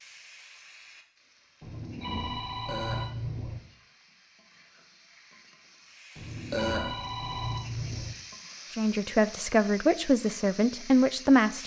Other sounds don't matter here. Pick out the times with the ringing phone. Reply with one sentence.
The ringing phone can be heard from 1.6 to 3.6 s and from 6.2 to 8.2 s.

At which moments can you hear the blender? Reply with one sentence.
You can't hear the blender here.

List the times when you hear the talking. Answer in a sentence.
The talking can be heard from 8.7 to 11.6 s.